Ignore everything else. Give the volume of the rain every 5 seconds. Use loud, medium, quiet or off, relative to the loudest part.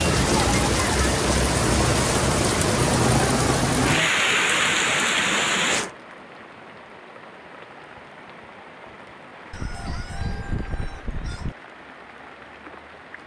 loud, medium, quiet.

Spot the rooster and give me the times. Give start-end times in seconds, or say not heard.
9.5-11.6.